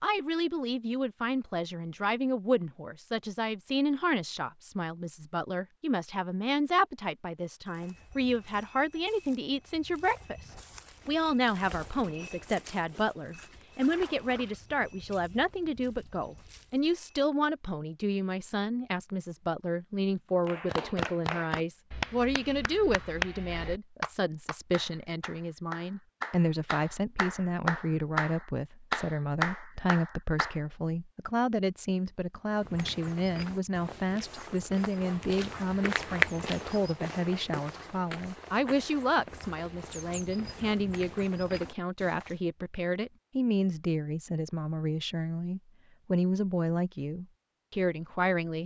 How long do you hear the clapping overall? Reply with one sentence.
You can hear the clapping for 10 seconds altogether.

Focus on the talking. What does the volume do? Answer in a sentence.
The volume of the talking stays about the same.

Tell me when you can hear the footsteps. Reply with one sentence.
You can hear the footsteps from 7.7 to 17.2 s and from 32.5 to 42.4 s.